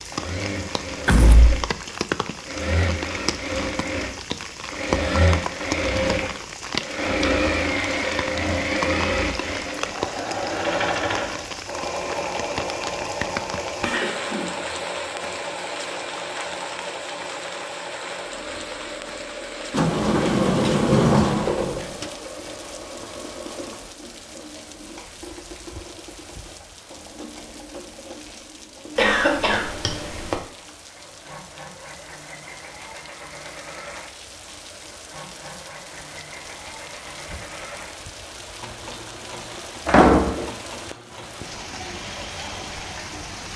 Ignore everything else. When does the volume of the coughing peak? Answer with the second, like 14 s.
29 s.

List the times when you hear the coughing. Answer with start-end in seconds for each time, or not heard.
13.8-14.7, 28.9-30.4.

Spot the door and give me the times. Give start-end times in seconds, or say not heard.
1.1-1.6, 19.7-22.1, 39.9-40.5.